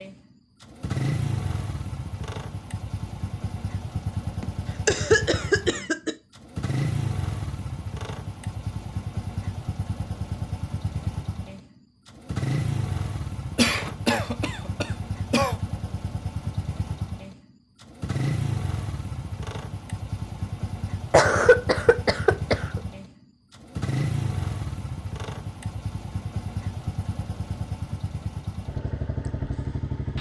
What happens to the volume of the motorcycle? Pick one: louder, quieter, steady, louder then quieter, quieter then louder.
steady.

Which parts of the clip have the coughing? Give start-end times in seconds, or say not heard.
4.4-6.2, 13.6-15.6, 21.1-22.8.